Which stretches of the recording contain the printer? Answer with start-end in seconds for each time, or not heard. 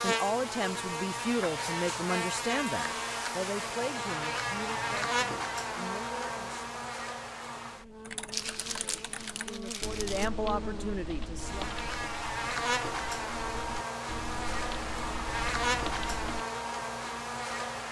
not heard.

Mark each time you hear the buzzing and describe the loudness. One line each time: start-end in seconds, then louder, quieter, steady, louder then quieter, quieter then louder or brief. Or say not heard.
0.0-17.8 quieter then louder.